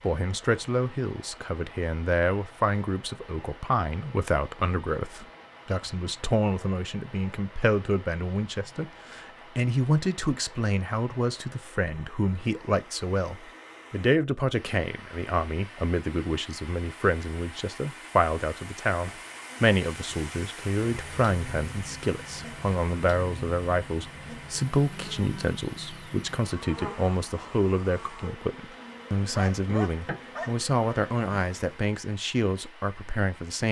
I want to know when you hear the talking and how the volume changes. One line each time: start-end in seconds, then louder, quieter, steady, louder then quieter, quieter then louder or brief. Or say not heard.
0.0-33.6 steady.